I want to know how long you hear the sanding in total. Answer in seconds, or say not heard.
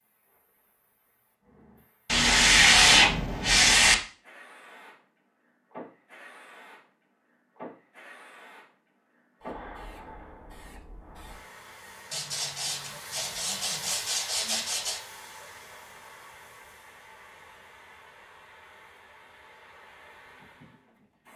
5 s.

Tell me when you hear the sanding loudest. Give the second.
3 s.